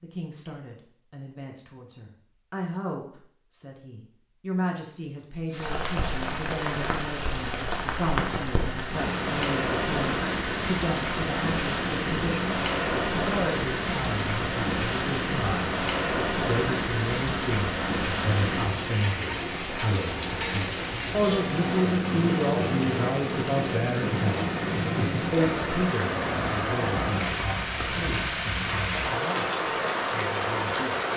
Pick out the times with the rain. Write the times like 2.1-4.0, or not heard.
5.5-31.1.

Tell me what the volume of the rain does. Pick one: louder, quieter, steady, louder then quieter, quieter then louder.
steady.